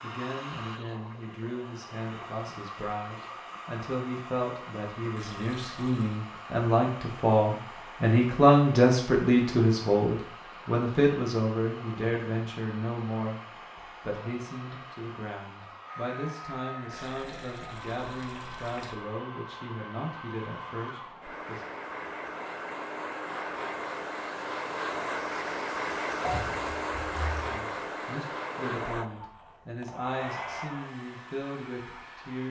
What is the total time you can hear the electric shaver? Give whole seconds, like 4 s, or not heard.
not heard.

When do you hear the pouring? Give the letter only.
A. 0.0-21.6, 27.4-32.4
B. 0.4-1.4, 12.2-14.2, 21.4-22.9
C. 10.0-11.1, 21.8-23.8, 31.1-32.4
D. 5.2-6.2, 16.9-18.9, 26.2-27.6
D.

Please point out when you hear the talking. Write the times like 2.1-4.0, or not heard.
0.0-21.6, 27.4-32.4.